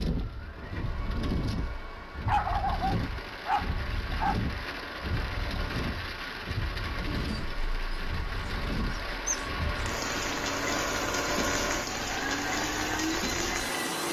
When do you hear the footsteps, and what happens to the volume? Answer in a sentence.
The footsteps can't be heard in this clip.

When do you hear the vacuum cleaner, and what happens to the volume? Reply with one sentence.
The vacuum cleaner can be heard from 0.0 to 14.0 s, getting louder.